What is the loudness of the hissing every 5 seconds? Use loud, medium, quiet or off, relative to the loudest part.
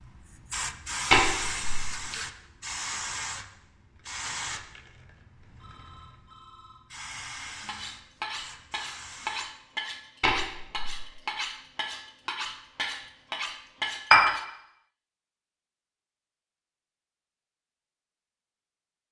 loud, medium, off, off.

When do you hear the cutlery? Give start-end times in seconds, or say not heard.
7.7-14.4.